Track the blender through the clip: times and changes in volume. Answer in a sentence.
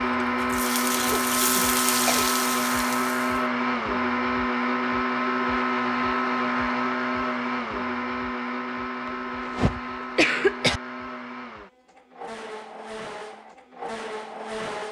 The blender can be heard from 0.0 to 14.8 s, getting quieter.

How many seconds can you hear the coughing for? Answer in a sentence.
You can hear the coughing for 3 seconds altogether.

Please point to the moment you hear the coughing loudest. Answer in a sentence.
The loudest moment of the coughing is at 10 seconds.